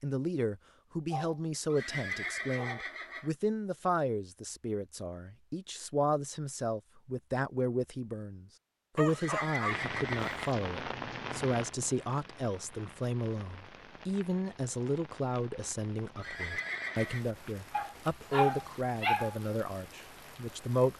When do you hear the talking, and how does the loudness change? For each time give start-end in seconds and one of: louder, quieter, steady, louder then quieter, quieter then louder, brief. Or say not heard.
0.0-20.9 steady.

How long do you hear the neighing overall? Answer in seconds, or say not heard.
4 s.